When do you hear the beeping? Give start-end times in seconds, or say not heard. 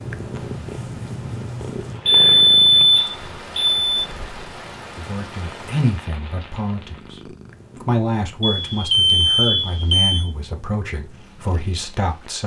2.0-3.8, 8.4-10.3.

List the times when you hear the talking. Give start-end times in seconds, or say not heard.
5.0-12.4.